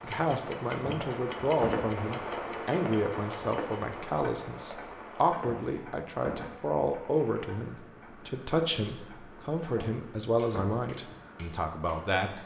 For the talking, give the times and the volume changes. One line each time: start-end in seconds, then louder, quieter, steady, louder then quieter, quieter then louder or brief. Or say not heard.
0.0-12.4 steady.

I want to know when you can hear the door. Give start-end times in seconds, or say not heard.
0.8-1.9, 5.3-6.5, 9.7-10.8.